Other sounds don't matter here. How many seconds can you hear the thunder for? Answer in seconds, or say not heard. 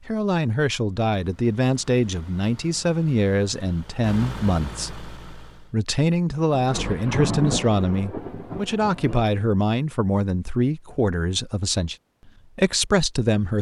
3 s.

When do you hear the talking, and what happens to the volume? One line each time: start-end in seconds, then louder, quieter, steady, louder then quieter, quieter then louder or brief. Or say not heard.
0.1-13.5 steady.